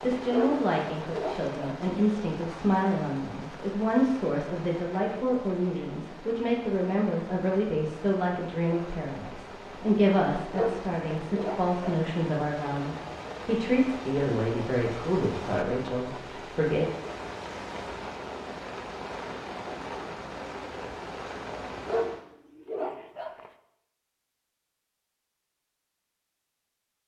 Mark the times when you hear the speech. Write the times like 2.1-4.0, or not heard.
0.0-16.9.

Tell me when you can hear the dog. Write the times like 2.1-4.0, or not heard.
0.3-1.9, 10.5-12.0, 21.9-23.5.